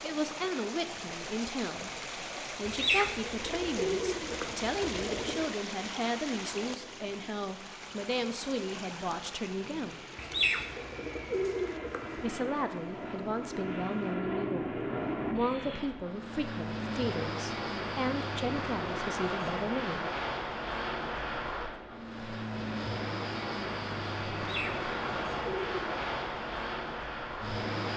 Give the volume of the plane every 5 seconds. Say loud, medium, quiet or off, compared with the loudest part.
quiet, quiet, loud, loud, loud, loud.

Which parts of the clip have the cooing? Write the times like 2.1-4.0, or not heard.
2.6-5.5, 10.2-12.3, 24.4-25.9.